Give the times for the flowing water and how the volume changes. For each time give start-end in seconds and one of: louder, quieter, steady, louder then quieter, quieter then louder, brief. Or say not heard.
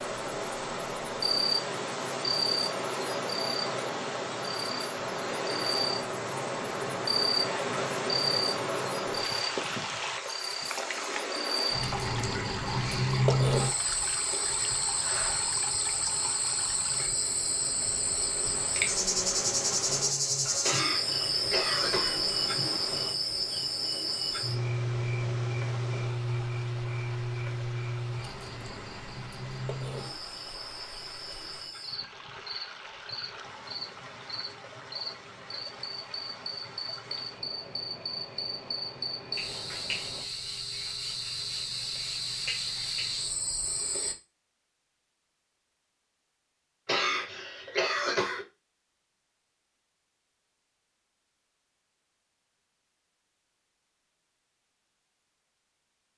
0.0-40.2 quieter.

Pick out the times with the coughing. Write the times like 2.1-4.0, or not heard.
20.6-22.2, 46.9-48.5.